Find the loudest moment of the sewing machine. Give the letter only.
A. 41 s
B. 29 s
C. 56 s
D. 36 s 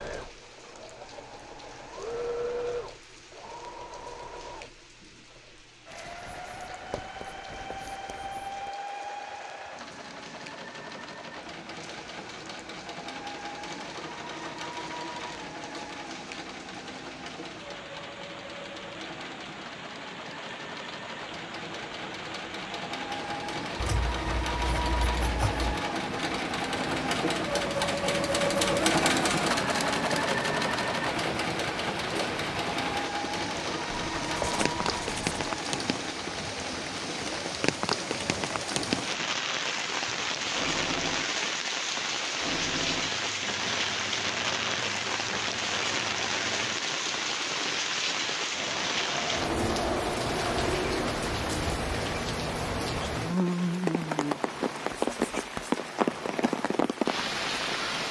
B.